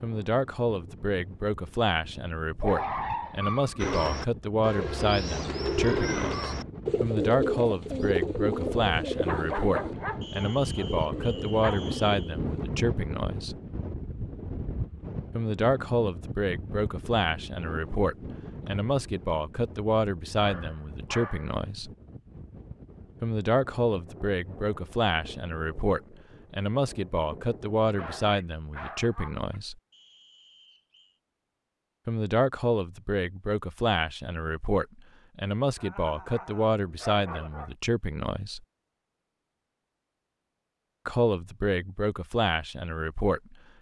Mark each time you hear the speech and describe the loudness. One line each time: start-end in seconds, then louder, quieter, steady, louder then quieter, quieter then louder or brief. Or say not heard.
0.0-13.6 steady
15.3-21.9 steady
23.2-29.8 steady
32.0-38.6 steady
41.0-43.5 brief.